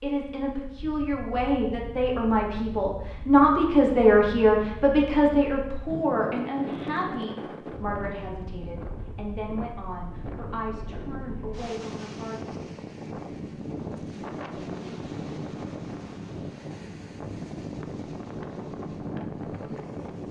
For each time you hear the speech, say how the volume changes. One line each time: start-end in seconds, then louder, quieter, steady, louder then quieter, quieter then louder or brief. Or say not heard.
0.0-12.4 louder then quieter.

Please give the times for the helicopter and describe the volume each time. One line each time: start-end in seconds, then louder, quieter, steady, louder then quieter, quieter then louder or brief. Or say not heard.
not heard.